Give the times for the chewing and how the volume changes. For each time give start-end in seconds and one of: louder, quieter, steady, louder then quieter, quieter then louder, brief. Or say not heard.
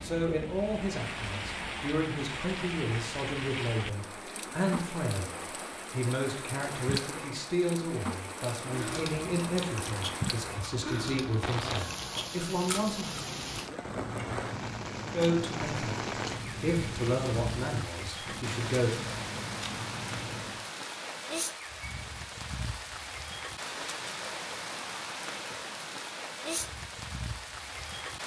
8.7-20.6 steady.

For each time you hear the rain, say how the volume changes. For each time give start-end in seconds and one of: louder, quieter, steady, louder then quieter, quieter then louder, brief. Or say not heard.
0.0-28.2 steady.